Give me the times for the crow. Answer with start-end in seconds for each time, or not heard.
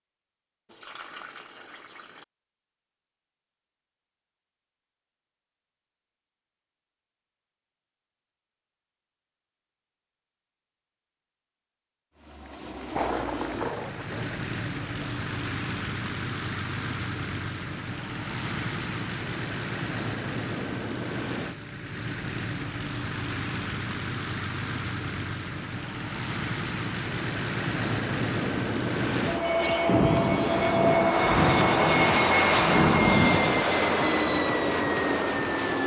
not heard.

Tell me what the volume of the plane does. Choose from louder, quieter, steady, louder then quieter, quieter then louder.
louder.